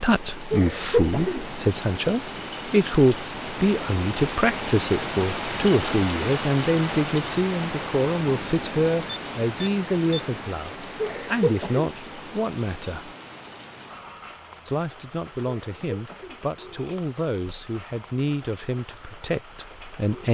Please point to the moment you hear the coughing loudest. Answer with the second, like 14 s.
1 s.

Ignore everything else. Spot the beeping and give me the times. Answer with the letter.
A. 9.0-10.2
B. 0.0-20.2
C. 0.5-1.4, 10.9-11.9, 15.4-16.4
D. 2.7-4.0
A.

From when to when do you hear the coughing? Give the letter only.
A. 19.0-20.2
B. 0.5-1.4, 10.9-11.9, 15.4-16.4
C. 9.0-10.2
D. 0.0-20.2
B.